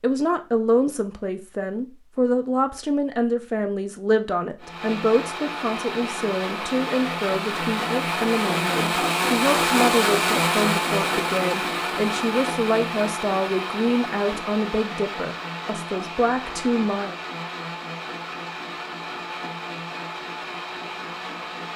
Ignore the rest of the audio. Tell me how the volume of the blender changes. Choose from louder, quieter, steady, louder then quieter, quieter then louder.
louder then quieter.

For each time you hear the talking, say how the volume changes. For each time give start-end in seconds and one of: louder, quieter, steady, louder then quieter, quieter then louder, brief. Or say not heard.
0.0-17.1 steady.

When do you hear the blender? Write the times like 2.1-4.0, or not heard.
4.6-21.7.